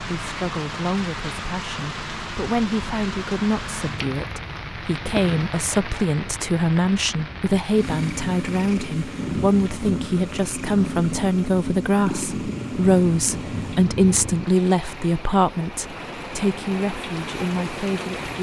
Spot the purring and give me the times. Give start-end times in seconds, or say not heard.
7.7-14.5.